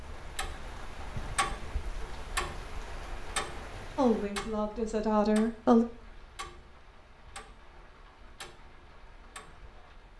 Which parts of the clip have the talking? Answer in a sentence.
The talking can be heard from 4.0 to 5.8 s.